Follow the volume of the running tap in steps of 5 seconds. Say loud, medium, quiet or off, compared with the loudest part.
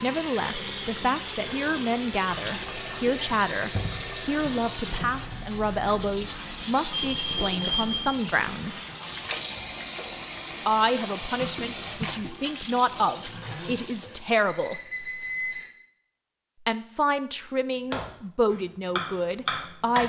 loud, loud, loud, off.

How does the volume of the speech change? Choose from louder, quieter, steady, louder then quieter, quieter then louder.
steady.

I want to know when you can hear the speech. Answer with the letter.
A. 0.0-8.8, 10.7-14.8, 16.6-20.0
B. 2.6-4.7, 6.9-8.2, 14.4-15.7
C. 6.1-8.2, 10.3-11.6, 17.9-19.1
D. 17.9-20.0
A.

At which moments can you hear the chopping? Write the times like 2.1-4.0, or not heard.
17.9-20.0.